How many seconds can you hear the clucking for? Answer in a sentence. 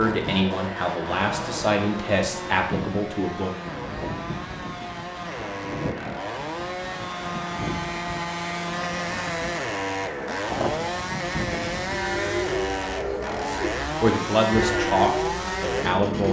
The clucking can't be heard in this clip.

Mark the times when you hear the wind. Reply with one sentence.
The wind can be heard from 0.1 to 12.2 s.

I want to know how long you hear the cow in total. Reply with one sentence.
The cow can be heard for 4 seconds in total.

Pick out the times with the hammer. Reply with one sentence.
You can't hear the hammer here.